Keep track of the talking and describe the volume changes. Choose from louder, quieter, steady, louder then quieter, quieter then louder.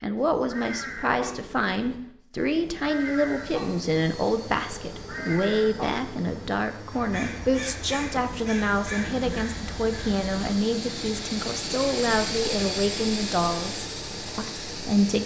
steady.